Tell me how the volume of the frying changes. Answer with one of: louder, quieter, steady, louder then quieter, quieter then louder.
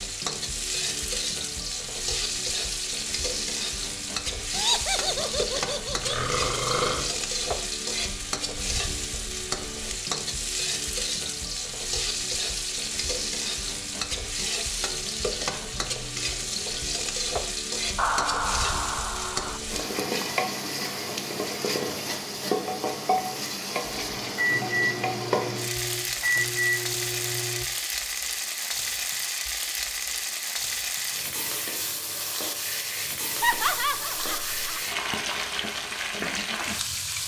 steady.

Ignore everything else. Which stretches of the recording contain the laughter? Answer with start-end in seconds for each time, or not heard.
4.5-6.2, 17.9-19.6, 33.4-34.9.